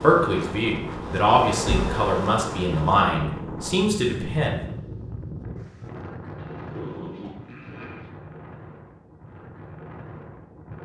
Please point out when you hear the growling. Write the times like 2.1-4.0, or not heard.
6.3-8.1.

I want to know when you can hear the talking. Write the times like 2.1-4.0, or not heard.
0.0-4.5.